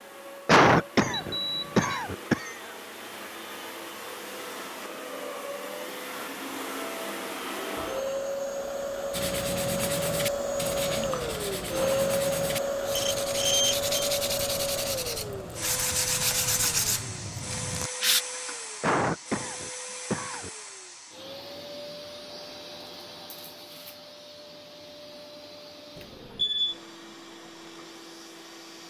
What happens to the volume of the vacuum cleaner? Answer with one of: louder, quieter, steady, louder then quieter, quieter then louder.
louder then quieter.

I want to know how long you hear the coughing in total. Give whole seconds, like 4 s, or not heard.
4 s.